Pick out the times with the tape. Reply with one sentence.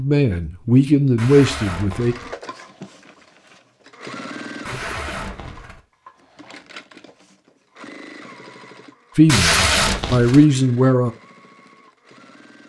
The tape can be heard from 1.1 to 2.4 s, from 4.7 to 5.8 s and from 9.2 to 10.4 s.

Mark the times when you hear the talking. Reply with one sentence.
The talking can be heard from 0.0 to 2.1 s and from 9.2 to 11.1 s.